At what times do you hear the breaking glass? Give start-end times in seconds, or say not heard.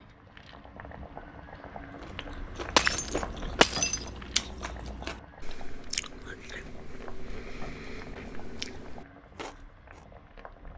2.8-4.1.